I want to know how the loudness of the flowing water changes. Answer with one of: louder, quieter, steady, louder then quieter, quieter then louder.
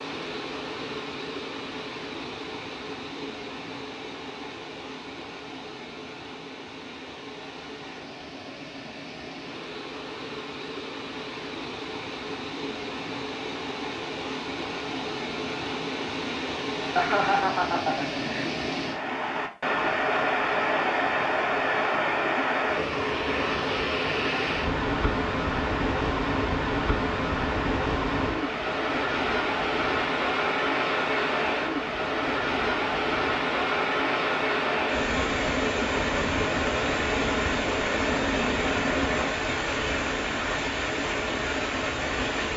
louder.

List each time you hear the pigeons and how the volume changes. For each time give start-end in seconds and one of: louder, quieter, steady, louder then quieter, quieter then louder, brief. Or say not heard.
not heard.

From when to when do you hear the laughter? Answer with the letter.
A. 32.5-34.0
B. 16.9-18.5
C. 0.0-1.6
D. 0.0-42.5
B.